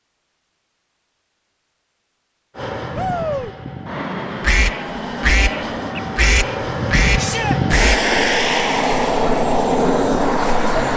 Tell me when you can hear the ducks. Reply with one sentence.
You can hear the ducks from 4.4 to 8.1 s.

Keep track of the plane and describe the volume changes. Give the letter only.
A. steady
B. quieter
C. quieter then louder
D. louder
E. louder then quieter
D.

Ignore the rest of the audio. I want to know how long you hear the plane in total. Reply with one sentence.
The plane can be heard for 8 seconds in total.